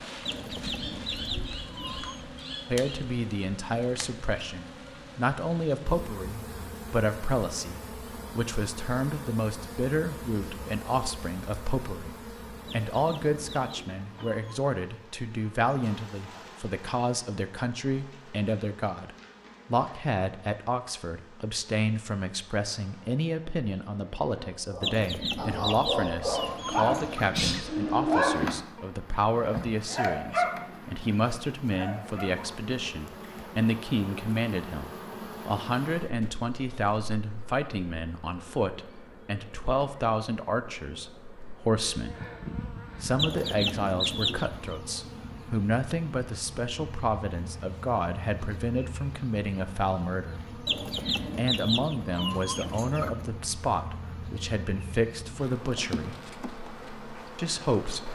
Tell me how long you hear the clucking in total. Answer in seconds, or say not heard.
11 s.